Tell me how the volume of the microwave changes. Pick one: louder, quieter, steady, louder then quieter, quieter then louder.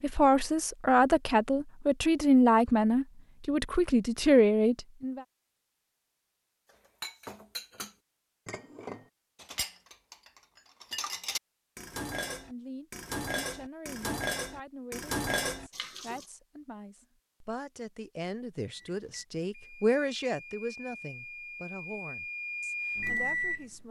louder.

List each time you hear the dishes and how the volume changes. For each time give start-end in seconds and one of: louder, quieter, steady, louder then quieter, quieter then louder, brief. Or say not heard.
6.7-16.2 louder.